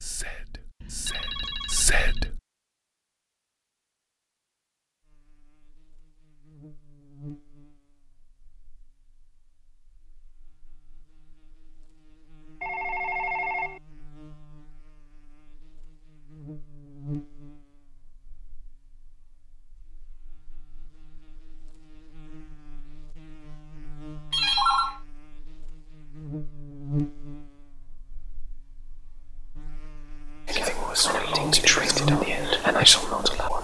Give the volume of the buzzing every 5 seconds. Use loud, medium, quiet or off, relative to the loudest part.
off, quiet, quiet, quiet, quiet, medium, loud.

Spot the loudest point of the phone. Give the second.
25 s.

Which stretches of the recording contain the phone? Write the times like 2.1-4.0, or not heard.
0.8-2.3, 12.6-13.8, 24.3-25.0.